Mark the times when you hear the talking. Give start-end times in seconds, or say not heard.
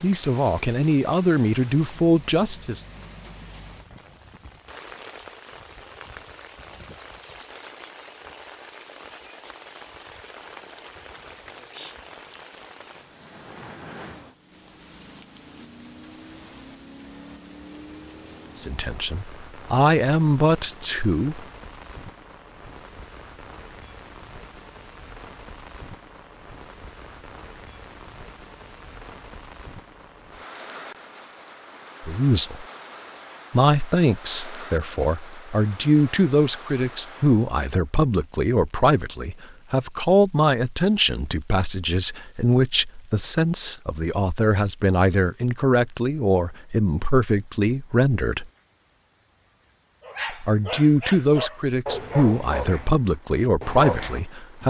0.0-2.8, 18.6-21.4, 32.0-32.6, 33.5-48.5, 50.3-54.6.